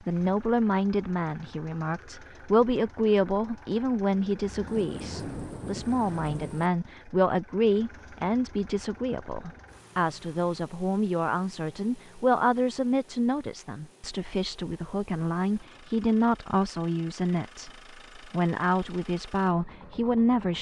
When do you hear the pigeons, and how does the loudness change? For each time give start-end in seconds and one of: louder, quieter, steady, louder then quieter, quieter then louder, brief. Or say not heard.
not heard.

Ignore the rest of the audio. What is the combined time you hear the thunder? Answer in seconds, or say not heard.
2 s.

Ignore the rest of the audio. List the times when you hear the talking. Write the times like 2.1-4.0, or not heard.
0.1-20.5.